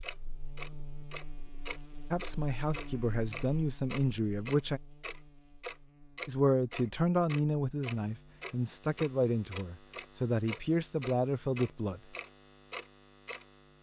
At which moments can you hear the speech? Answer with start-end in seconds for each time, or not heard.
2.1-4.8, 6.2-12.0.